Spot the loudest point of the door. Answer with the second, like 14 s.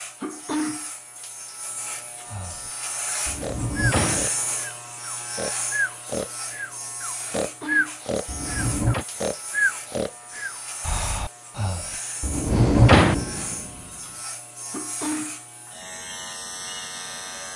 13 s.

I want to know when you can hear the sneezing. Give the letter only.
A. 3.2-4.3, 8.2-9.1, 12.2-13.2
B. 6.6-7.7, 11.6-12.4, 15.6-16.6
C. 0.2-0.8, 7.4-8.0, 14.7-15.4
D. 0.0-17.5
C.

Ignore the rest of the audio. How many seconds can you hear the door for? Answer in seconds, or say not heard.
3 s.